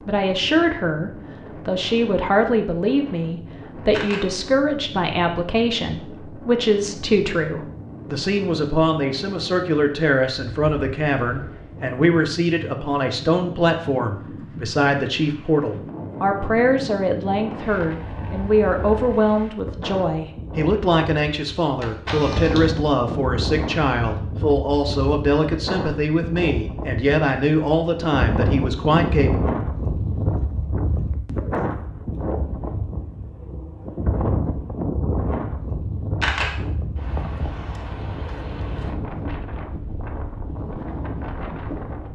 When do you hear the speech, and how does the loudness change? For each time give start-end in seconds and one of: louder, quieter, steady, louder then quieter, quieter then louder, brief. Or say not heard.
0.1-29.4 steady.